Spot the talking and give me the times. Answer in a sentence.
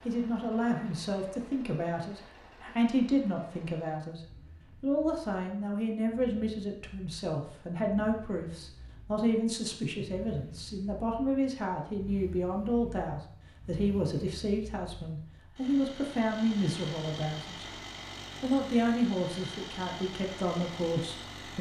The talking can be heard from 0.1 to 4.2 s, from 4.8 to 17.6 s and from 18.4 to 21.5 s.